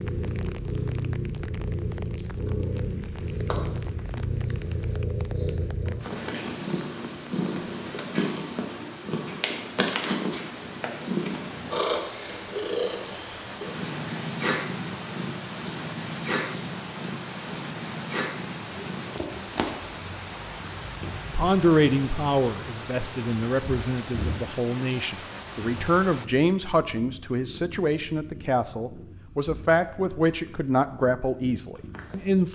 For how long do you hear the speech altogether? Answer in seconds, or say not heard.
11 s.